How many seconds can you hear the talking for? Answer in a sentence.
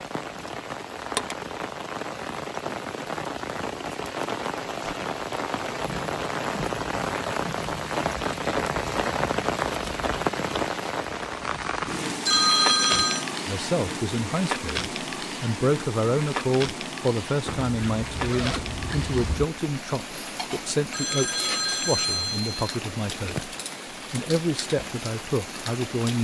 The talking can be heard for 12 seconds in total.